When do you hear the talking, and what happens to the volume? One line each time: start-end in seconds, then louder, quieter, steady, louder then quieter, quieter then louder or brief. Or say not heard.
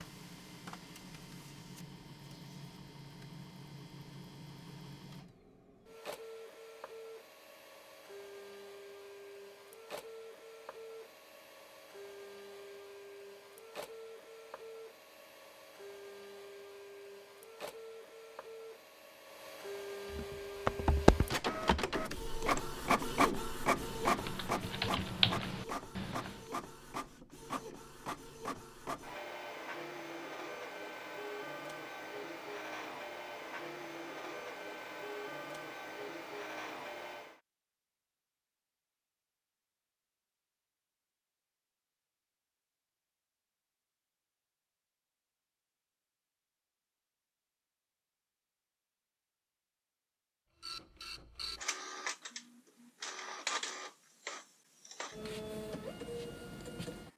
not heard.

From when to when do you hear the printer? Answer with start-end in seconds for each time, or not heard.
0.0-37.4, 50.6-57.1.